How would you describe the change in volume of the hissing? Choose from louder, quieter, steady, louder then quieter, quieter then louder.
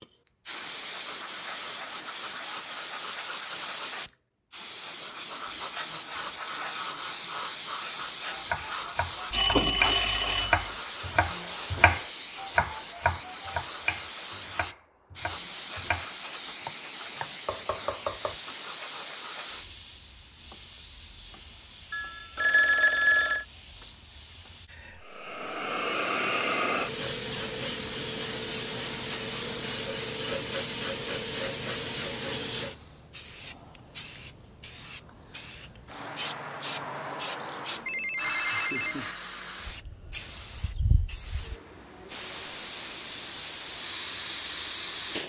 steady.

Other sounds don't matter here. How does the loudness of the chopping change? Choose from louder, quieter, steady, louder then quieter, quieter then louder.
quieter.